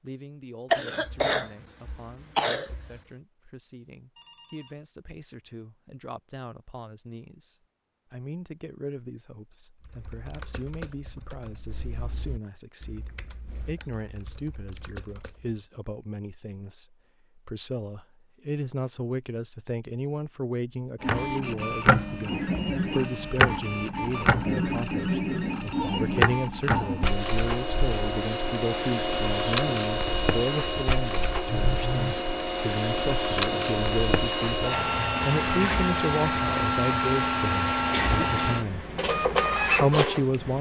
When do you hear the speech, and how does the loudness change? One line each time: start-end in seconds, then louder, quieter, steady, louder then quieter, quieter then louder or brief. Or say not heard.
0.0-38.9 louder
39.8-40.5 brief.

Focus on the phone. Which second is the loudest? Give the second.
32 s.